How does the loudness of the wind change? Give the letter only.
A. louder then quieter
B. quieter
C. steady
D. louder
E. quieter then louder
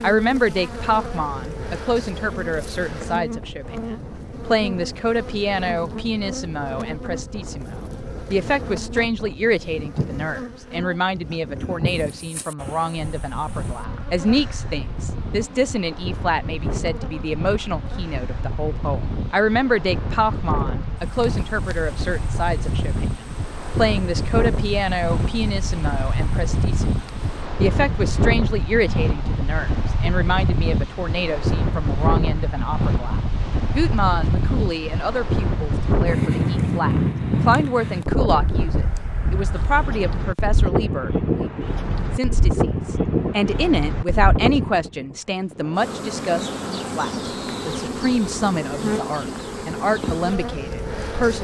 D.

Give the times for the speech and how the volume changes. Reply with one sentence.
You can hear the speech from 0.0 to 51.4 s, at a steady volume.